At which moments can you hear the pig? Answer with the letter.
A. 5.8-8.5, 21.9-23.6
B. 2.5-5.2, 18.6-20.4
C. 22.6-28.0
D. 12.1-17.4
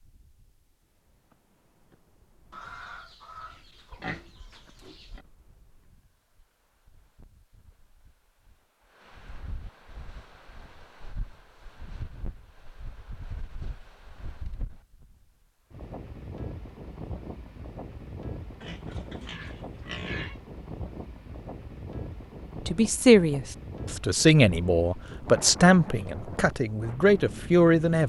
B.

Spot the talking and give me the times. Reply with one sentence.
You can hear the talking from 22.6 to 28.0 s.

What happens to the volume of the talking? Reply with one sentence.
The loudness of the talking goes down, then up.